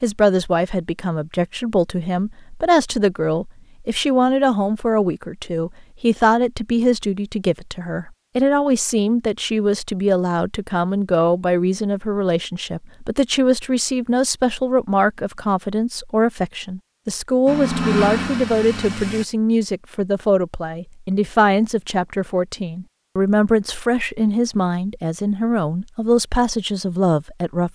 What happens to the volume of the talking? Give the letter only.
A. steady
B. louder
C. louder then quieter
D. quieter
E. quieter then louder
A.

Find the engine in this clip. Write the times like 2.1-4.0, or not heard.
17.4-19.2.